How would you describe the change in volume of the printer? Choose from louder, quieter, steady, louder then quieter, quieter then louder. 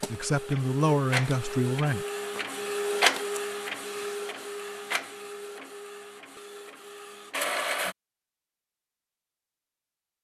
louder then quieter.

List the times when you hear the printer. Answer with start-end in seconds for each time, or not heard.
0.0-8.0.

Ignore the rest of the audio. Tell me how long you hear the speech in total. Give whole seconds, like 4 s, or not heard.
2 s.